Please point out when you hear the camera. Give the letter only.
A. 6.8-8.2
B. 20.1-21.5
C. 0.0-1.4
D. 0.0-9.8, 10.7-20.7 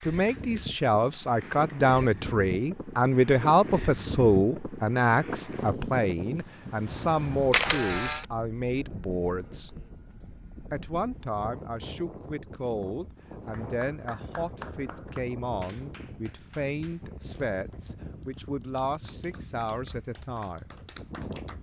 A.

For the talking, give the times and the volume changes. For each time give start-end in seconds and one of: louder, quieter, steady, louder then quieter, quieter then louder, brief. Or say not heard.
0.0-9.8 quieter
10.7-20.7 steady.